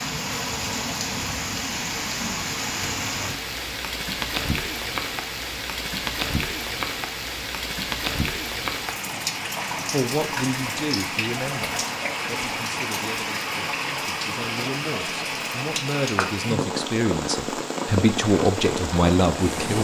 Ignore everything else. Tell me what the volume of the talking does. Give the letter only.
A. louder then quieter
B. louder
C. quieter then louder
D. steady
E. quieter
C.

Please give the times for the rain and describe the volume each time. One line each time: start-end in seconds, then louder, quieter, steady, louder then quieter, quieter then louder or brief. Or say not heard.
0.0-19.7 steady.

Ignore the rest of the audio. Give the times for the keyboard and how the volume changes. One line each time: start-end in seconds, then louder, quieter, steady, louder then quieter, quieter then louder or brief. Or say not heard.
not heard.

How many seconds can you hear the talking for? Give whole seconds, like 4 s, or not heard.
10 s.